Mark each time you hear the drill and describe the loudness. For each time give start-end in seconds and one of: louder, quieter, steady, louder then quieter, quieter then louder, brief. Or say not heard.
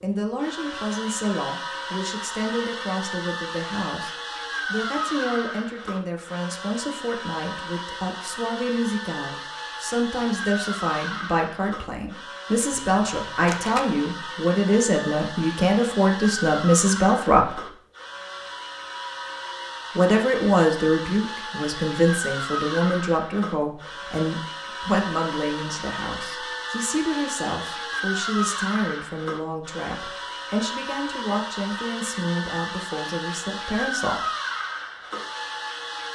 0.0-36.1 steady.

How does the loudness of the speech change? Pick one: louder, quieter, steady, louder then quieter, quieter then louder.
louder then quieter.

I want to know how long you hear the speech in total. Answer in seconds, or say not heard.
31 s.